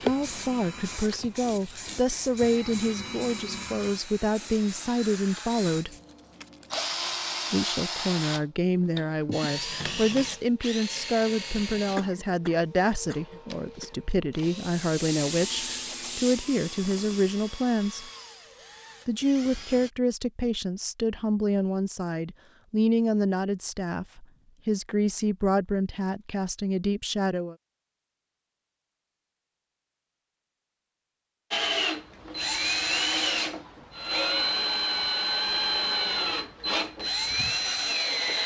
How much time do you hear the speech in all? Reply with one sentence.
The speech can be heard for 25 seconds in total.